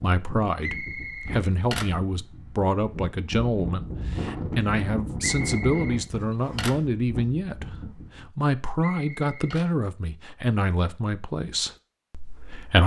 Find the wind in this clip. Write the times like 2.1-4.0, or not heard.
0.0-8.2.